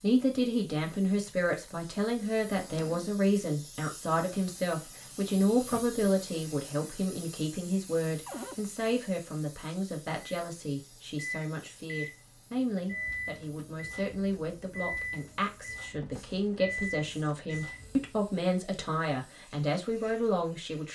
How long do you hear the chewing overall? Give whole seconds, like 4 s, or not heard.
not heard.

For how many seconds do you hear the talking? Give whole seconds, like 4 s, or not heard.
21 s.